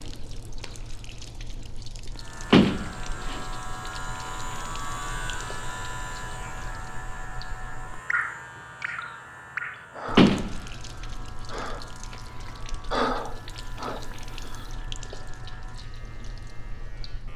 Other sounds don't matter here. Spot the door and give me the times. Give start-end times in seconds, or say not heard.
2.5-3.4, 10.2-10.6.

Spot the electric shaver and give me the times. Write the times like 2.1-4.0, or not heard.
2.1-17.3.